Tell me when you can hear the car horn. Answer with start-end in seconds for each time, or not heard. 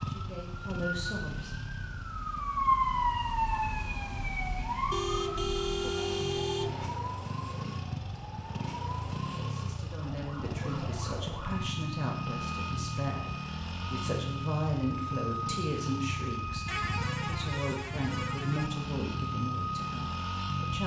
4.9-6.9, 16.6-18.7.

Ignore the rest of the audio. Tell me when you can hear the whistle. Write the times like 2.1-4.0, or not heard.
not heard.